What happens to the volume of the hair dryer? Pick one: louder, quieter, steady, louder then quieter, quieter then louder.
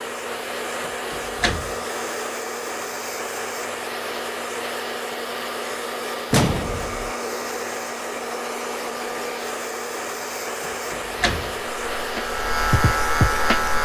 steady.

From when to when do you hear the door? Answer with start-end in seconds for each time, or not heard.
0.8-1.8, 6.3-7.1, 10.7-11.6.